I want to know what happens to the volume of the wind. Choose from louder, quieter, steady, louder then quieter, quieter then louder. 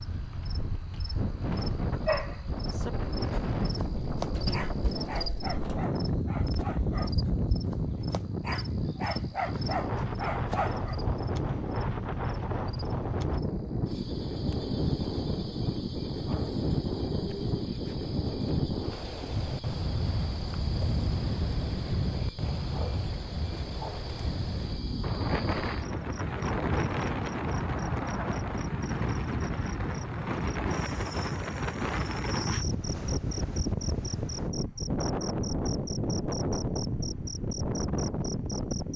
steady.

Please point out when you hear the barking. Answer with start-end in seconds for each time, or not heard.
2.0-11.0.